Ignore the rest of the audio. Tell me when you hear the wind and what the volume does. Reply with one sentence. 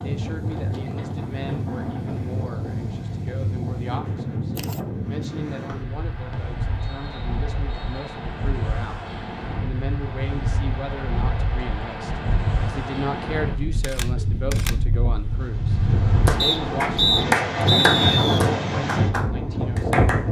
The wind can be heard from 0.0 to 20.2 s, getting louder.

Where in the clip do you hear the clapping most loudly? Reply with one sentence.
The loudest moment of the clapping is at 17 seconds.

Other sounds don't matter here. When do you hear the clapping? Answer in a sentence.
The clapping can be heard from 16.2 to 20.2 s.